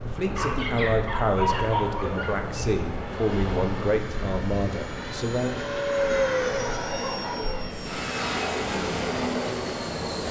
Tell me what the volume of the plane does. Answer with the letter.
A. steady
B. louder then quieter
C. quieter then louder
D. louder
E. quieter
D.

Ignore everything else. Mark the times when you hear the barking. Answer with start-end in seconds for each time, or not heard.
0.3-2.3, 6.5-7.8.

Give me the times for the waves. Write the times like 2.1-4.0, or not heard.
0.0-10.2.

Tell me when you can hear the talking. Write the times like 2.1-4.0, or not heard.
0.1-5.6.